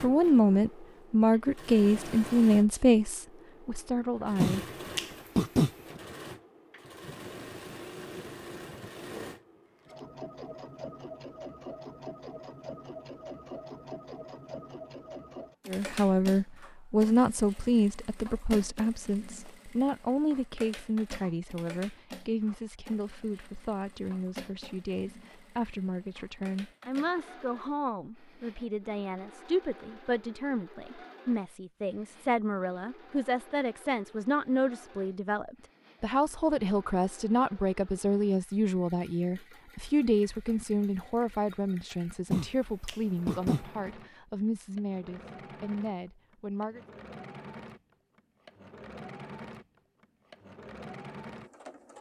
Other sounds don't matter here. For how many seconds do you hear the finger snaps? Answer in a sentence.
You can hear the finger snaps for 3 seconds altogether.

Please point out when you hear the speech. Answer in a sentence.
The speech can be heard from 0.0 to 4.7 s and from 15.7 to 46.8 s.